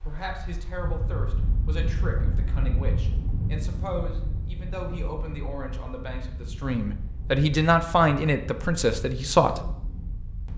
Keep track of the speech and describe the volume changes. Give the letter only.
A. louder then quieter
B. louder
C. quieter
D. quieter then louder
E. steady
B.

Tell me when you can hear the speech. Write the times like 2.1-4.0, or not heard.
0.0-9.7.